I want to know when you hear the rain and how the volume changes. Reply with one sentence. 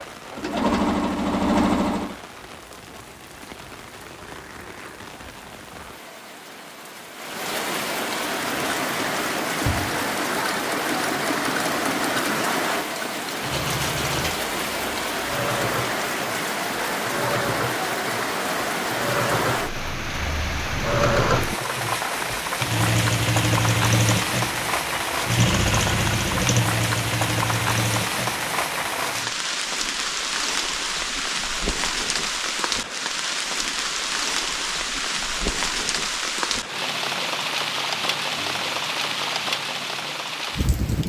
You can hear the rain from 0.0 to 41.0 s, getting louder.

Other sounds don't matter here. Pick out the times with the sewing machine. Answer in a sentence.
The sewing machine can be heard from 0.0 to 2.1 s and from 8.2 to 29.4 s.